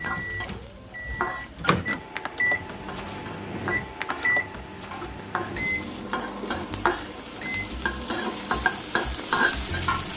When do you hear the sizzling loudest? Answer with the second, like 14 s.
9 s.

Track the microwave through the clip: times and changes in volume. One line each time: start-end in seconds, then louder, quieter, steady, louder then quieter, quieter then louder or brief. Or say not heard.
0.0-10.1 quieter.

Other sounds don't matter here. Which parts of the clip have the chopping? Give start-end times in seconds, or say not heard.
not heard.